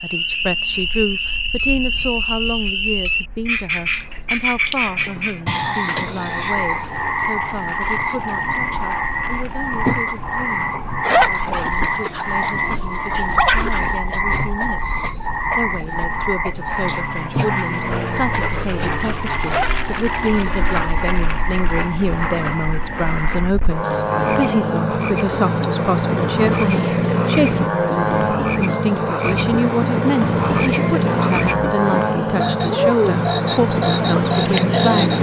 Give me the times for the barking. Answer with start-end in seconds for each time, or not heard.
11.0-13.9, 19.4-20.7.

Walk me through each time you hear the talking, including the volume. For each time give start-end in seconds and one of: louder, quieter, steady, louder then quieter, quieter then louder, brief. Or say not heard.
0.0-35.1 quieter then louder.